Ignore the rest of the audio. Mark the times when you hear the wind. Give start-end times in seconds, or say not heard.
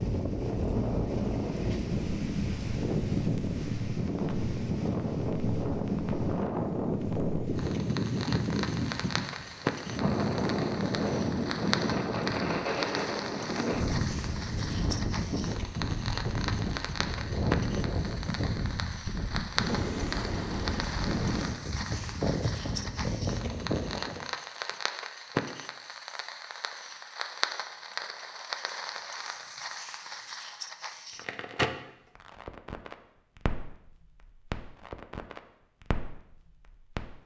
0.0-24.2.